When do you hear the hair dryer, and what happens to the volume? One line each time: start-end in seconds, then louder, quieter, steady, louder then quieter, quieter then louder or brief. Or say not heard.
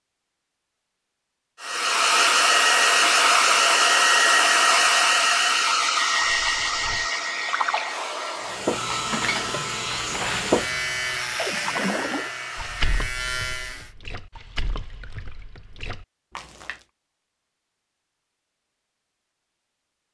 1.6-13.0 quieter.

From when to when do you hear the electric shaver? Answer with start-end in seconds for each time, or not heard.
8.4-13.9.